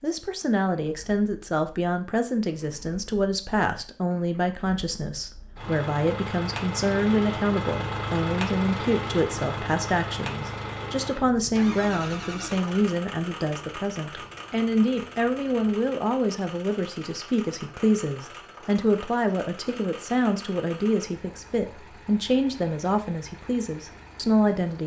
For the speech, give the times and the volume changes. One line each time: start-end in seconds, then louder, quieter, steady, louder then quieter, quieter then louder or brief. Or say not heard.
0.0-24.8 steady.